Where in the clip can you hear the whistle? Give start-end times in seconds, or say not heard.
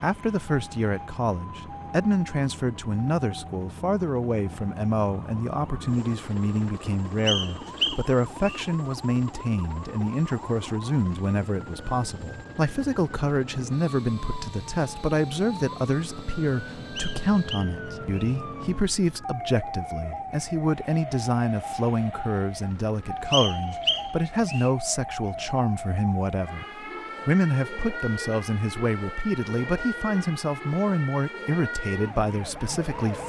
7.2-8.7, 16.9-18.4, 23.3-24.7.